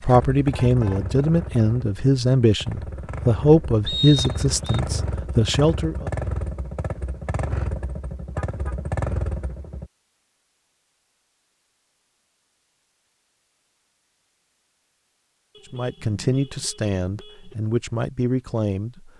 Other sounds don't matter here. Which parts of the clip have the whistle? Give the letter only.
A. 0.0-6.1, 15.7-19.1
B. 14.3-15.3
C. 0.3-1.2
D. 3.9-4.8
D.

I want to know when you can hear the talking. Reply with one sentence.
The talking can be heard from 0.0 to 6.1 s and from 15.7 to 19.1 s.